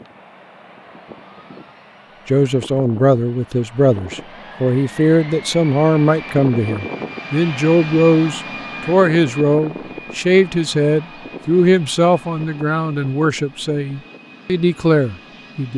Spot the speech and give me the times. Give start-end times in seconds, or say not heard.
2.2-15.7.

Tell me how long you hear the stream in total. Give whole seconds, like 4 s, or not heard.
not heard.